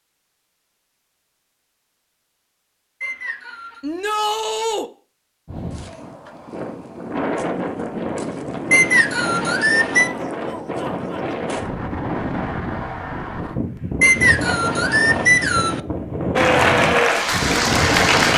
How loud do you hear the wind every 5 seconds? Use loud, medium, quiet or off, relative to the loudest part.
off, loud, loud, loud.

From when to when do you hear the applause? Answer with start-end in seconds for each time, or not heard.
16.4-18.3.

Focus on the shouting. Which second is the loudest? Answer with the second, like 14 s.
4 s.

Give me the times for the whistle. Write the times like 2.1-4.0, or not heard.
3.0-3.8, 8.7-10.1, 14.0-15.8.